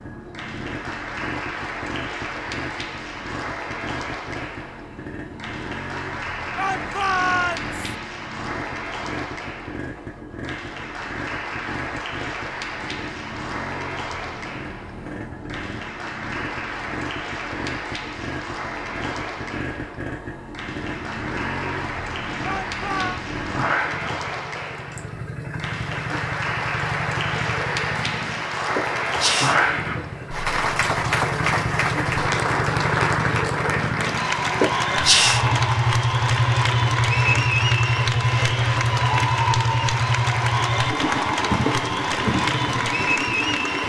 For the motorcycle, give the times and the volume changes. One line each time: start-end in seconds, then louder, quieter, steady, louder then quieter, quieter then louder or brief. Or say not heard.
0.0-43.8 louder.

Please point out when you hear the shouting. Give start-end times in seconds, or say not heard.
6.5-7.8, 22.4-23.2.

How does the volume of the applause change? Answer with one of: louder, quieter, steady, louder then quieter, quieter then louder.
louder.